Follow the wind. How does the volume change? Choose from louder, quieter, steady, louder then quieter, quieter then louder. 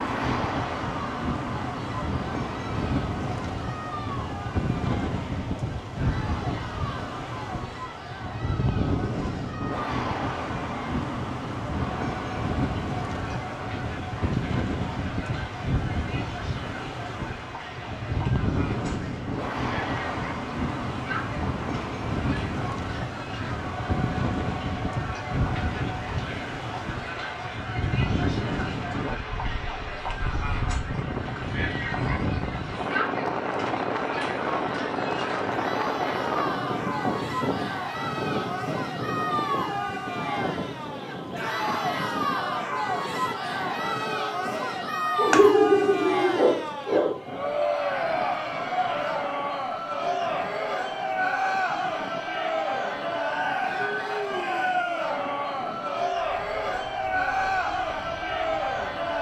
quieter.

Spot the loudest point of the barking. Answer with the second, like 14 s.
46 s.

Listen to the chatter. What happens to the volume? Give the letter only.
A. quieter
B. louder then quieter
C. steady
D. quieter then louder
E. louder
E.